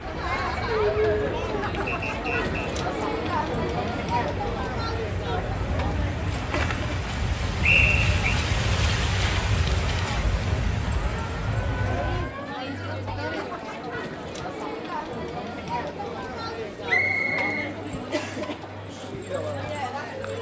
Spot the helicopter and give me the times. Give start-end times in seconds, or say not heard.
not heard.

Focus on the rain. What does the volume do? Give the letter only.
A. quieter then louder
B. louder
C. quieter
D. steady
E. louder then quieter
B.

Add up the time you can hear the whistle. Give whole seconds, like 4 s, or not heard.
3 s.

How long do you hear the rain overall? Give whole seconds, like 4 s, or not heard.
12 s.